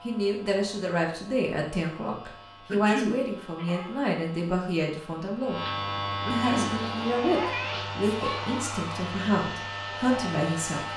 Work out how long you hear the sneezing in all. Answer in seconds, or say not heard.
4 s.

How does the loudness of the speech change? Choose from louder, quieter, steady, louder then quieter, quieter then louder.
steady.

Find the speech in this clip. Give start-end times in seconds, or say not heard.
0.0-5.6, 6.3-10.9.